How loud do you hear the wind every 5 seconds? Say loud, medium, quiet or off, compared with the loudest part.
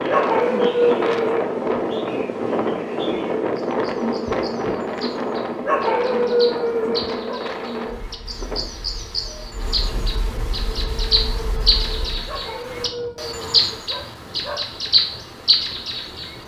loud, medium, quiet, quiet.